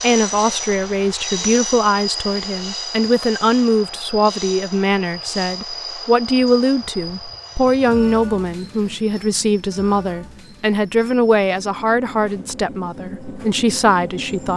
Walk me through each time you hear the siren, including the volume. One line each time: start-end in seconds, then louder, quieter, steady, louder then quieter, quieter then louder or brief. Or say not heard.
not heard.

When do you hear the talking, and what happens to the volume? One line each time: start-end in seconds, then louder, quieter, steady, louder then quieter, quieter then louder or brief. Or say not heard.
0.0-14.5 steady.